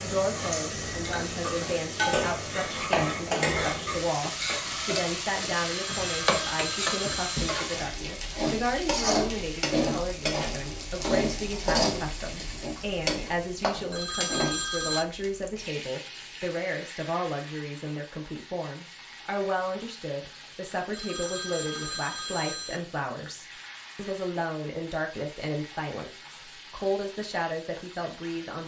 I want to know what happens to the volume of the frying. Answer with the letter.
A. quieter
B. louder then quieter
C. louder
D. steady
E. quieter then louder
A.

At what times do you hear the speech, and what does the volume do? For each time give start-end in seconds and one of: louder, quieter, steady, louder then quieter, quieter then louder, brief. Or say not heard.
0.0-28.6 steady.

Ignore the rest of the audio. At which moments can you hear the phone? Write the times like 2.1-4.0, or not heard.
5.8-7.3, 13.9-15.1, 20.9-22.8.